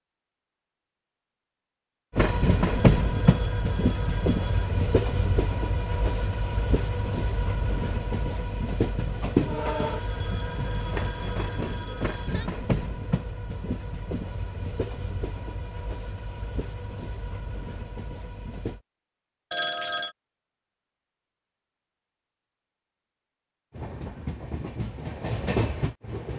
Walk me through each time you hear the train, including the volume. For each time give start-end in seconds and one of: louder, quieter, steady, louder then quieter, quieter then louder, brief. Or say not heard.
2.1-18.8 quieter
23.7-26.3 brief.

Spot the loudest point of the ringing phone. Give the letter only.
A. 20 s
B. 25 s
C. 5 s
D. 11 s
A.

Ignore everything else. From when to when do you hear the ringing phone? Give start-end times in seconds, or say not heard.
2.7-4.7, 9.7-12.5, 19.5-20.1.